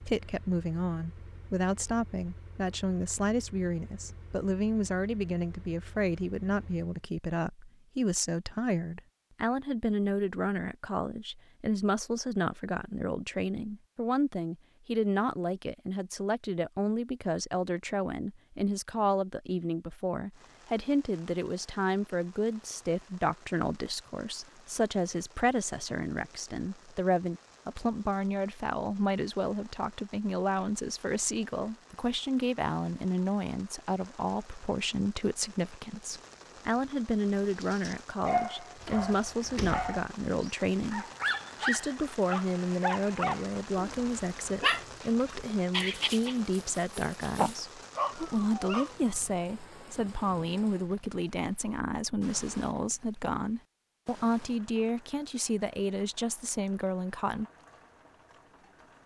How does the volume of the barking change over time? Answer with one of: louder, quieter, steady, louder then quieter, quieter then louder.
steady.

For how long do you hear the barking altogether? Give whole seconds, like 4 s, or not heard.
11 s.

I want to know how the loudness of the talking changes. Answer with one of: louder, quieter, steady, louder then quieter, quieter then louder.
steady.